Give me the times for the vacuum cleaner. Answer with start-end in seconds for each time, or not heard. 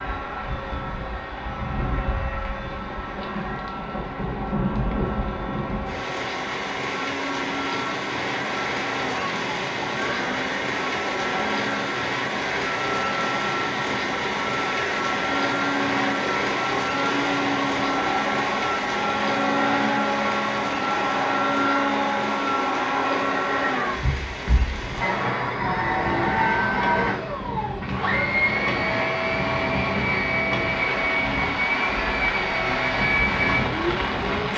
0.0-34.5.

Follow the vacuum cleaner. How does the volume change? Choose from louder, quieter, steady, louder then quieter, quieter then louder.
louder.